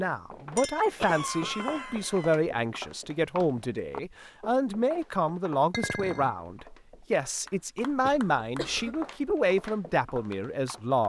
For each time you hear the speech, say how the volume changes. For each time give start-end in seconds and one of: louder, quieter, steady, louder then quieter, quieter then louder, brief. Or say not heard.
0.0-11.0 steady.